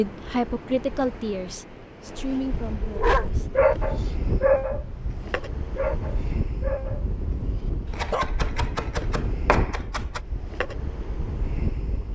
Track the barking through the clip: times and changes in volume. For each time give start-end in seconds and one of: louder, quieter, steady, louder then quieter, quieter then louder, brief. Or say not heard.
2.8-8.2 quieter.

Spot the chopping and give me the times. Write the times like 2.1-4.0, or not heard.
7.9-10.2.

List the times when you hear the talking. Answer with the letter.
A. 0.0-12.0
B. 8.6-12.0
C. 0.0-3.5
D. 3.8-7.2
C.